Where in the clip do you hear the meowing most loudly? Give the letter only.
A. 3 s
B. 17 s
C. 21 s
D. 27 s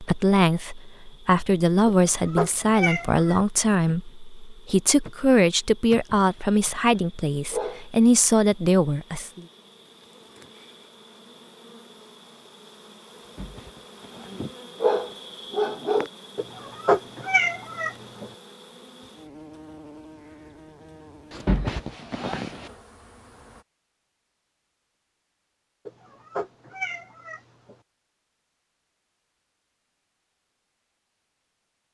B.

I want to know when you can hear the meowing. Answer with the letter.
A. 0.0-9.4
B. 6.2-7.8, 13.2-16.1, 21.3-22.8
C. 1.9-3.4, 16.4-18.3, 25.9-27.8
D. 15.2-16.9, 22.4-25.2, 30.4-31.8
C.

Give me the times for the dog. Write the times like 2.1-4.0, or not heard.
6.2-7.8, 13.2-16.1, 21.3-22.8.